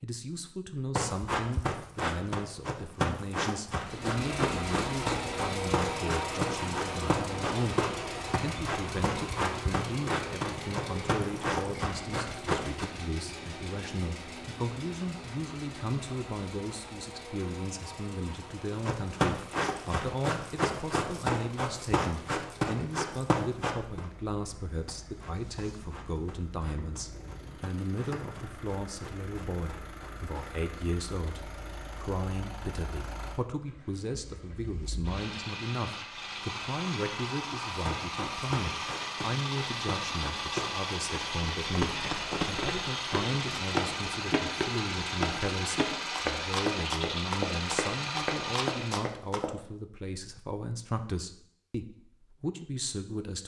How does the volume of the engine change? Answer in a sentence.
The volume of the engine goes down, then up.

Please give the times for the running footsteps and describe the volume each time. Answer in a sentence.
You can hear the running footsteps from 0.9 to 12.8 s, at a steady volume; from 18.9 to 30.6 s, getting quieter; and from 37.7 to 49.5 s, getting louder.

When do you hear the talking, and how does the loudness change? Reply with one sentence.
The talking can be heard from 0.0 to 53.4 s, at a steady volume.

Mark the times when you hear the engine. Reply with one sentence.
You can hear the engine from 3.7 to 49.1 s.